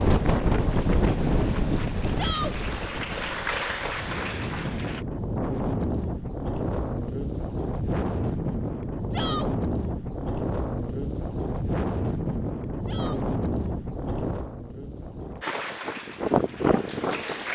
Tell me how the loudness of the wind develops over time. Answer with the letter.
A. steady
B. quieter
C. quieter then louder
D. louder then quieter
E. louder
A.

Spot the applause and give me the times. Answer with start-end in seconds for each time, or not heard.
0.0-5.0, 15.4-17.5.